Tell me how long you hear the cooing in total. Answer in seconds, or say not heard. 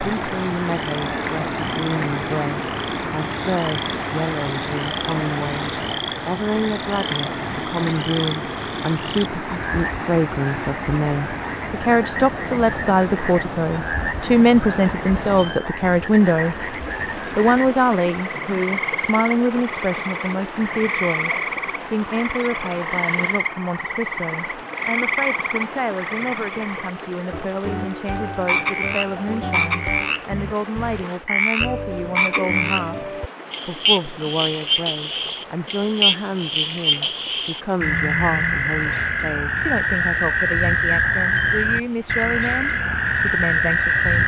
not heard.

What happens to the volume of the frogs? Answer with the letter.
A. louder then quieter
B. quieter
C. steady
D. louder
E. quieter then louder
D.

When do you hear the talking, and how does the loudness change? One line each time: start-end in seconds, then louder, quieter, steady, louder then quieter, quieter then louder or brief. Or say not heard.
0.0-44.2 louder then quieter.